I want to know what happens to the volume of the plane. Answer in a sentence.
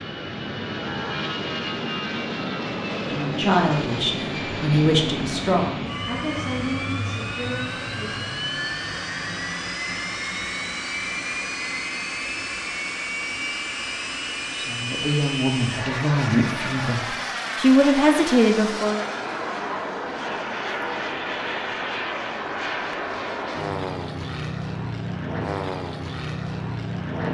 The loudness of the plane stays about the same.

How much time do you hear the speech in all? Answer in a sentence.
You can hear the speech for 10 seconds altogether.